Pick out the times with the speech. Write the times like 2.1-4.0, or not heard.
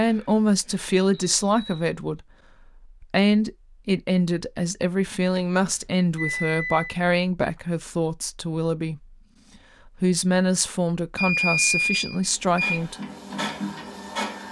0.0-9.2, 9.8-12.9.